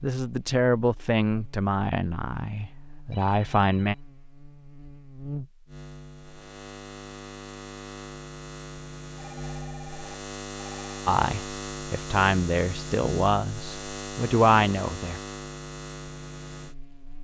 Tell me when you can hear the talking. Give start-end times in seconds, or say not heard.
0.0-4.0, 11.1-15.2.